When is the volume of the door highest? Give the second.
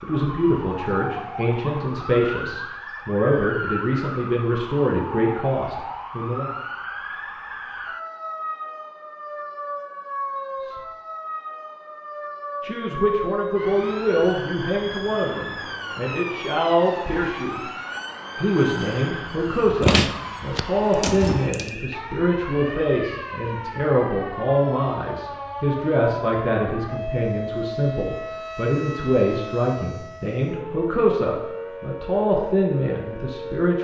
20 s.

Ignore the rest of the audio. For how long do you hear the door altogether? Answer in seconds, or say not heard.
2 s.